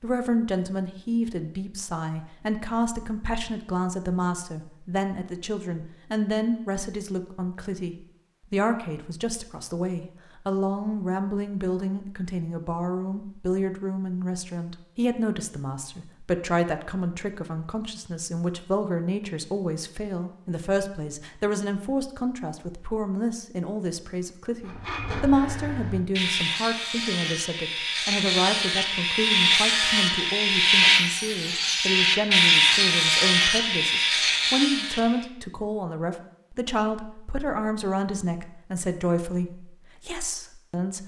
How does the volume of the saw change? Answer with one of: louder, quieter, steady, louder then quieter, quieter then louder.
louder.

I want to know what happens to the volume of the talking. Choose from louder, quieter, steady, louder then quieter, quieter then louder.
steady.